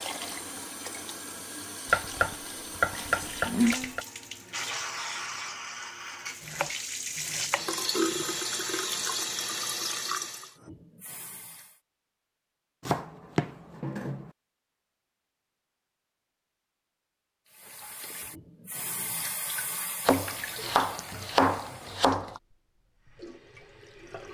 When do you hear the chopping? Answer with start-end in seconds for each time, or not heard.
1.9-4.0, 6.4-8.4, 12.8-14.3, 20.1-22.4.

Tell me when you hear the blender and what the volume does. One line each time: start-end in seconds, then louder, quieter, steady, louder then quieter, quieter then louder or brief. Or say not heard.
not heard.